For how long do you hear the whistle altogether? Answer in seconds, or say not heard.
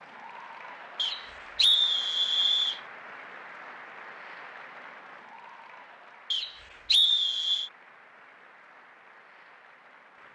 3 s.